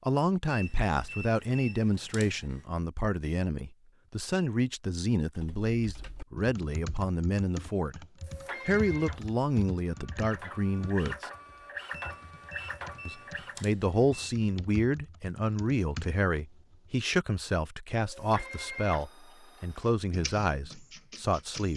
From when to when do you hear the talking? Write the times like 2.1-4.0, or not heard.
0.0-8.1, 8.7-11.3, 13.1-21.7.